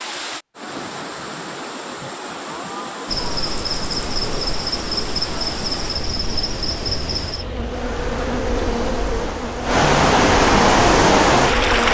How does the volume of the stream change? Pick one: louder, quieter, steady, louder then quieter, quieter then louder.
louder.